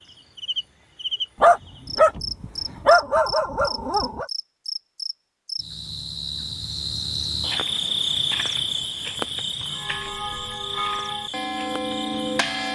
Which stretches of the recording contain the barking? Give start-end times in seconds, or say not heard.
1.4-4.2.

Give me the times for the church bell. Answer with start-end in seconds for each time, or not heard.
9.7-12.7.